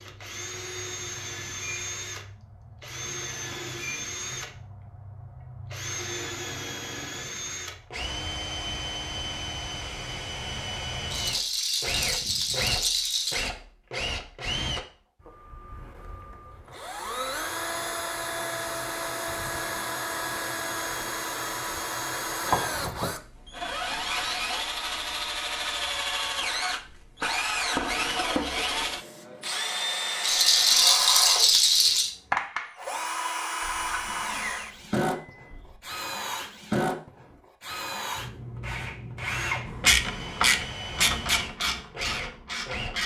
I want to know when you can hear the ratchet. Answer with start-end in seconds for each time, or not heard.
39.6-43.0.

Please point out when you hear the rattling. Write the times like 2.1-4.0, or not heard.
11.1-13.5, 30.2-32.1.